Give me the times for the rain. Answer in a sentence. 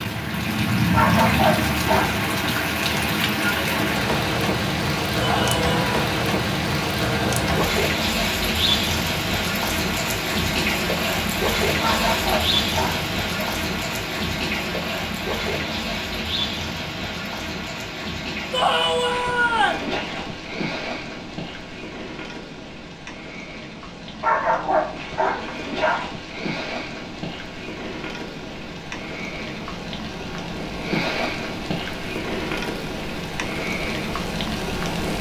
You can hear the rain from 0.0 to 35.1 s.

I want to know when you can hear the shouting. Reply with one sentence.
The shouting can be heard from 5.2 to 5.8 s and from 18.5 to 19.9 s.